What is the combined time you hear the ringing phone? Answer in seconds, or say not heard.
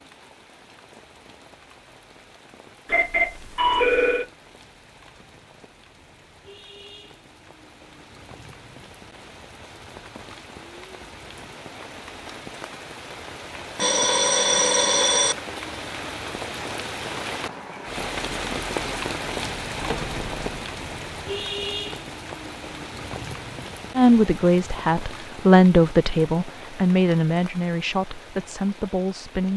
4 s.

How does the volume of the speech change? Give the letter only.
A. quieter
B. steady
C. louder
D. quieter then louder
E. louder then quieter
E.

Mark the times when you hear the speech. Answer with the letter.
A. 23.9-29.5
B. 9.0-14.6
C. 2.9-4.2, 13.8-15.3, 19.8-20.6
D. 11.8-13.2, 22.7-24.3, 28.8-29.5
A.